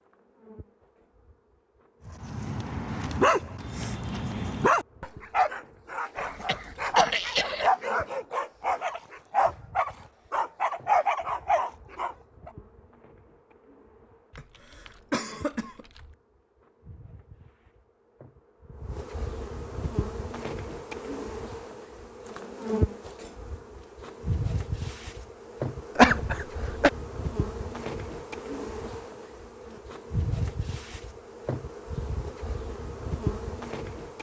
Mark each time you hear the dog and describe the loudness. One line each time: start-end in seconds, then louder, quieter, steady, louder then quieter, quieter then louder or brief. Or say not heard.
2.1-12.5 steady.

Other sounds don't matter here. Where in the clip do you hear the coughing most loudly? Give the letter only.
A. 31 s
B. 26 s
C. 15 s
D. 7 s
B.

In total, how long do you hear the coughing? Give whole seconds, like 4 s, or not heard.
4 s.